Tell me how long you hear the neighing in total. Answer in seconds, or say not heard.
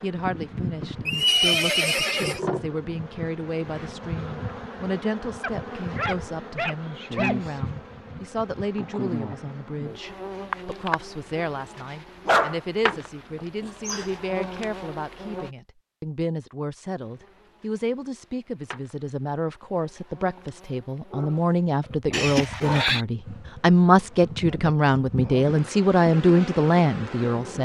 2 s.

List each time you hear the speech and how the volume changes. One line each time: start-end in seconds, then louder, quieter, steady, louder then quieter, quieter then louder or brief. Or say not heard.
0.0-27.6 louder.